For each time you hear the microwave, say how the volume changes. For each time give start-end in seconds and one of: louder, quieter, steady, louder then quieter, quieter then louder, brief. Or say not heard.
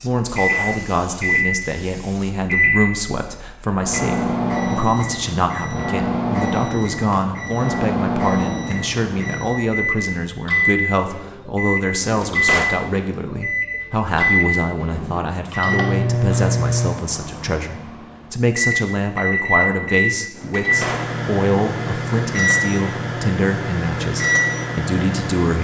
0.2-25.5 steady.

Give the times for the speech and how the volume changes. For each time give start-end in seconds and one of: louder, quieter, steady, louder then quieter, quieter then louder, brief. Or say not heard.
0.0-25.5 steady.